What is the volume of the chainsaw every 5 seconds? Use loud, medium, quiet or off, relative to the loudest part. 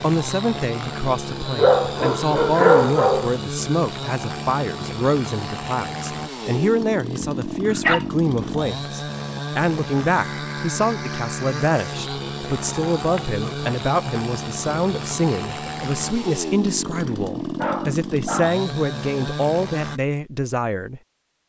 loud, loud, loud, loud, off.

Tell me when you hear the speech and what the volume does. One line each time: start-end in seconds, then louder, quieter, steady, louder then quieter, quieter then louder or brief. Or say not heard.
0.0-21.0 steady.